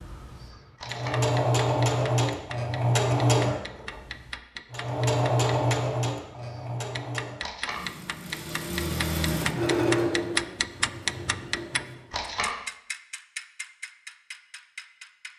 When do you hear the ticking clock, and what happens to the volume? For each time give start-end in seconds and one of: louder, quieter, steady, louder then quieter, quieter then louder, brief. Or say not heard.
0.0-15.3 louder then quieter.